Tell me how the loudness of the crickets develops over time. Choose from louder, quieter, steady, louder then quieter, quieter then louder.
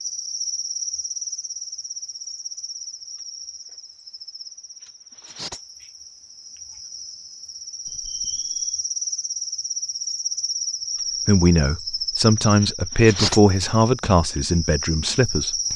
quieter then louder.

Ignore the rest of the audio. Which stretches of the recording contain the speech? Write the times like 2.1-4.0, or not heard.
11.2-15.7.